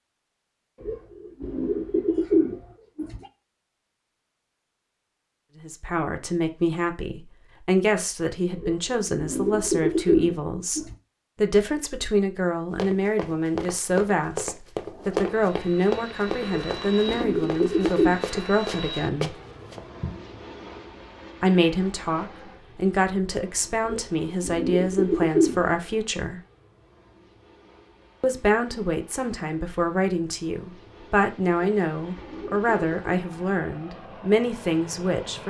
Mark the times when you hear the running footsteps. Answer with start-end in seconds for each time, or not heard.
12.8-20.2.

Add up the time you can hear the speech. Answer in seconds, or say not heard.
26 s.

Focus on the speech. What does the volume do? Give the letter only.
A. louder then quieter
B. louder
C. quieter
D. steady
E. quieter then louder
D.